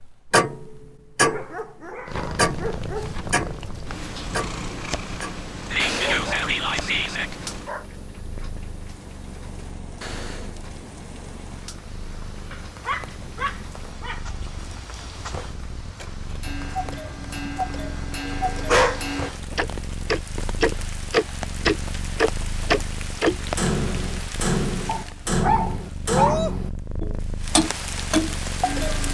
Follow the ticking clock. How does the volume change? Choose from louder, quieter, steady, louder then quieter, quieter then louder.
quieter then louder.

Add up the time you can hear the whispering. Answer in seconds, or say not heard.
2 s.